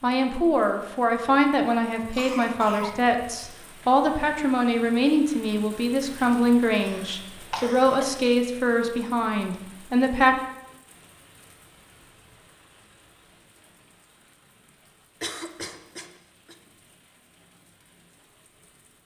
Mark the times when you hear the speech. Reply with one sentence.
You can hear the speech from 0.0 to 10.3 s.